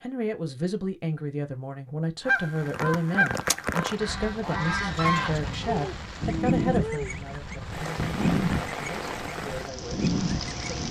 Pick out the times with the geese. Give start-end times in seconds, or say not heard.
2.2-10.8.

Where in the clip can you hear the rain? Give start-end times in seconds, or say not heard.
2.5-10.8.